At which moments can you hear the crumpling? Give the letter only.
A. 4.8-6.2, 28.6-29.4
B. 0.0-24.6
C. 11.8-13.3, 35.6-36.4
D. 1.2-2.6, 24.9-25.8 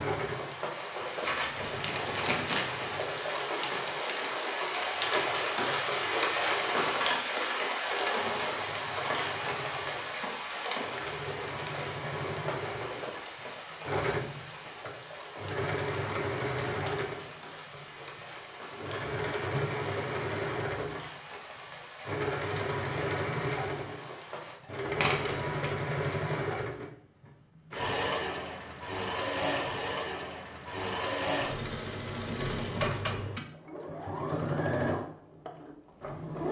D.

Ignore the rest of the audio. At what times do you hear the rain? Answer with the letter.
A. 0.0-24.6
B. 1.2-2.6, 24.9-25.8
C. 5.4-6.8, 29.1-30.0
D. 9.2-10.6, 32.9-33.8
A.